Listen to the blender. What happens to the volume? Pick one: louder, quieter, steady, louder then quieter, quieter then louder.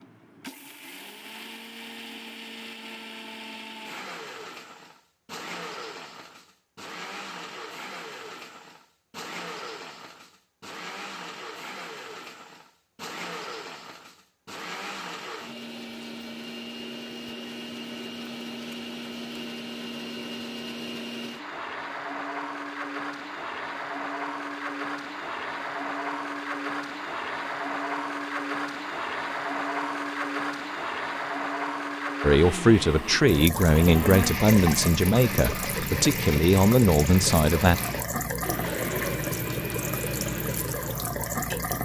louder.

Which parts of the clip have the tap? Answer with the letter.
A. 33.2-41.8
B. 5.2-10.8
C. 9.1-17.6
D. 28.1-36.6
A.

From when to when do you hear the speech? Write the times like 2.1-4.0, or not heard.
32.2-37.8.